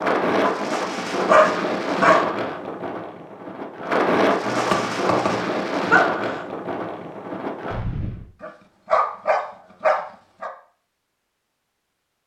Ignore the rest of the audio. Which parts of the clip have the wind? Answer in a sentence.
The wind can be heard from 0.0 to 8.2 s.